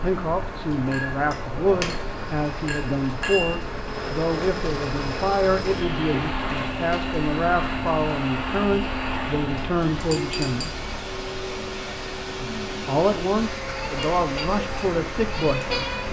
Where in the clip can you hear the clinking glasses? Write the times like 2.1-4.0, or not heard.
0.9-3.6, 9.9-10.8.